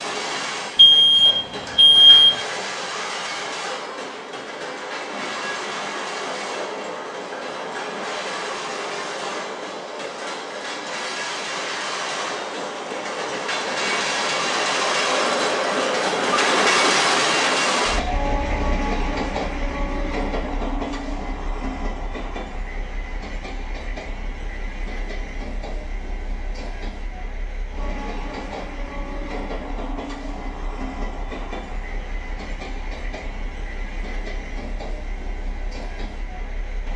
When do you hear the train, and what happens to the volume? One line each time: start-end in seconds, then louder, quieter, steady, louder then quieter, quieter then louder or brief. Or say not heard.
0.0-36.9 louder then quieter.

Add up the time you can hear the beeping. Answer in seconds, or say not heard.
2 s.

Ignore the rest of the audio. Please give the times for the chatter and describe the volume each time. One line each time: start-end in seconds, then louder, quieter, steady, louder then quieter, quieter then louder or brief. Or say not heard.
not heard.